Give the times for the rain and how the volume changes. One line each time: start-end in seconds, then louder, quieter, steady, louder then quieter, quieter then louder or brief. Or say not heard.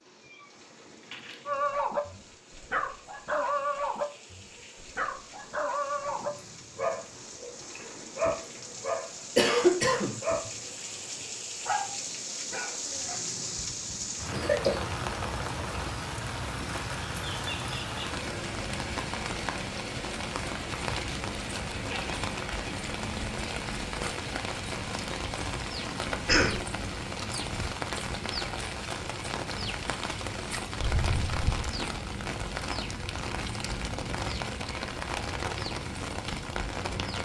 0.0-37.2 louder.